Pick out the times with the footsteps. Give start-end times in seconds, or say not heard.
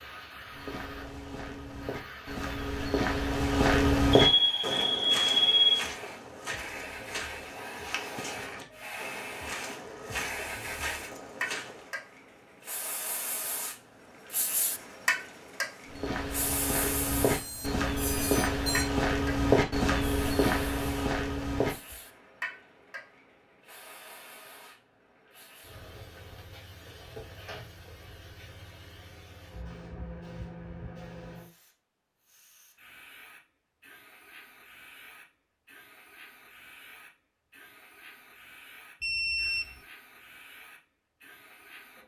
0.5-11.9, 15.8-21.9.